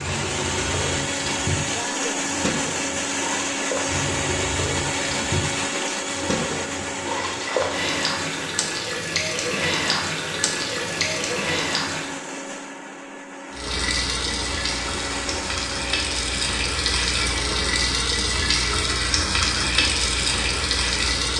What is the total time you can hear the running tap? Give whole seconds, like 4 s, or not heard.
20 s.